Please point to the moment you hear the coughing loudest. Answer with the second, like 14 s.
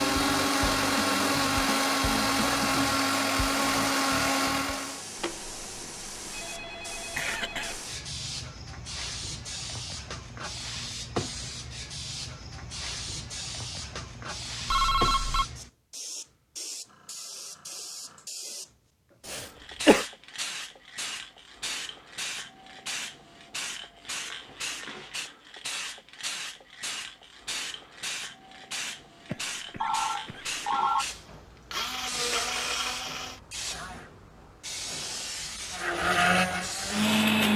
20 s.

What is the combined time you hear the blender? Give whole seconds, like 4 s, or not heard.
10 s.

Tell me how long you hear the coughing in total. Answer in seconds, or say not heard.
3 s.